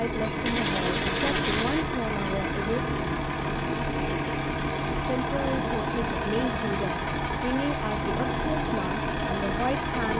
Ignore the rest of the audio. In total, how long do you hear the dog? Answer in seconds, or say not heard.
not heard.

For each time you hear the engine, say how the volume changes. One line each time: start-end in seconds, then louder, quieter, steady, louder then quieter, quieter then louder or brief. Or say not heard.
0.0-10.1 steady.